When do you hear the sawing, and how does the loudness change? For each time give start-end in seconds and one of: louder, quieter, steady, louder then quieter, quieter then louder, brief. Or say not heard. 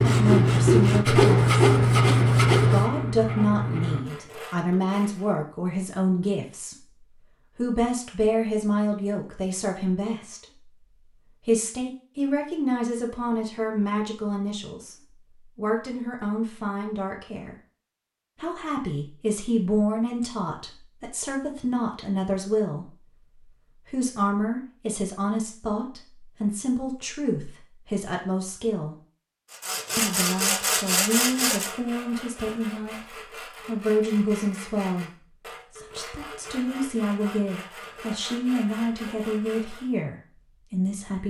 0.0-5.3 quieter
29.5-40.0 quieter.